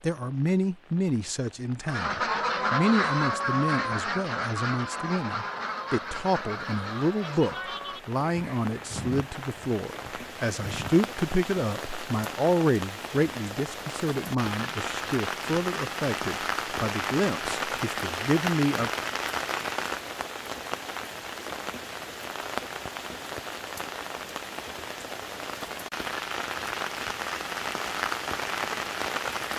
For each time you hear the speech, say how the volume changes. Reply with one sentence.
The speech can be heard from 0.0 to 18.9 s, at a steady volume.